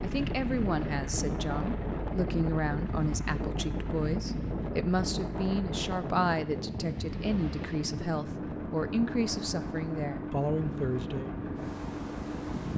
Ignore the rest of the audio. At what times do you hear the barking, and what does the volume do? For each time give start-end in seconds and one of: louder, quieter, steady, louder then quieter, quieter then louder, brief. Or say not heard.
not heard.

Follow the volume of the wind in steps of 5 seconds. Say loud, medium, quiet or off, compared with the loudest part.
loud, loud, medium.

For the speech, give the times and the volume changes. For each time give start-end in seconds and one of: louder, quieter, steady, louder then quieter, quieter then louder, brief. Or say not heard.
0.0-11.3 steady.